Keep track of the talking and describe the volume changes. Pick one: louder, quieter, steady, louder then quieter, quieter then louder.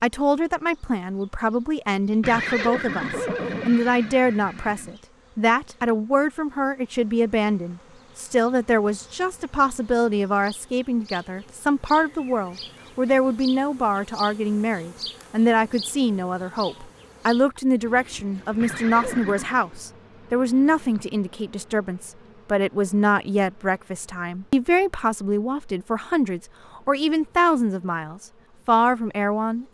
steady.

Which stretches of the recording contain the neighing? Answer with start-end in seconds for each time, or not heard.
2.2-5.0, 18.6-19.6.